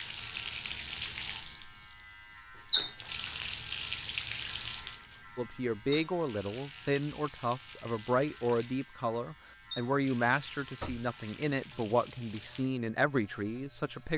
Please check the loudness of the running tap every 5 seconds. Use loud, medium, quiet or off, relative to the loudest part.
loud, quiet, quiet.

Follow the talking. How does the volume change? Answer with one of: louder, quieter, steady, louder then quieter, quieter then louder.
steady.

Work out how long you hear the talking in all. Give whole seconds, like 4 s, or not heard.
9 s.